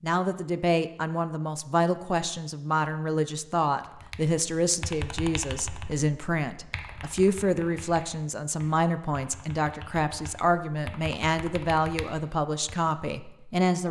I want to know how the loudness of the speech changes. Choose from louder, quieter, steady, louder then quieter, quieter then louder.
steady.